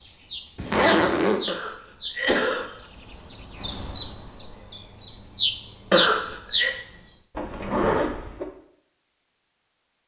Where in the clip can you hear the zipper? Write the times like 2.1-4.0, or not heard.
0.6-1.4, 7.3-8.4.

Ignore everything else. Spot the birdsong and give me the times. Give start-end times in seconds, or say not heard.
0.0-7.2.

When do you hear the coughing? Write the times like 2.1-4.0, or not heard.
1.4-2.7, 5.9-6.8.